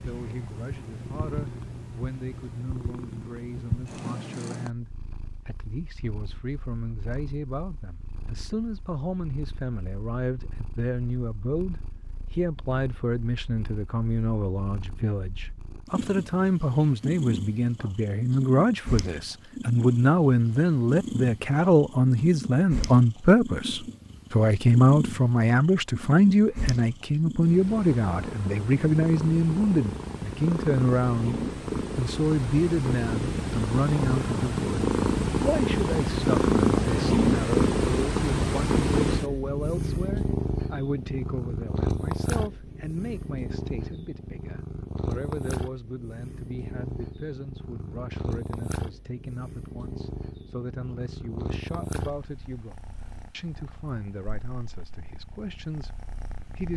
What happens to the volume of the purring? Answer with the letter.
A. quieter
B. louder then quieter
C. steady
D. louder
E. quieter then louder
B.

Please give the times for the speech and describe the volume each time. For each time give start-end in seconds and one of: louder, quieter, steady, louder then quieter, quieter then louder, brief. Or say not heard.
0.0-56.7 louder then quieter.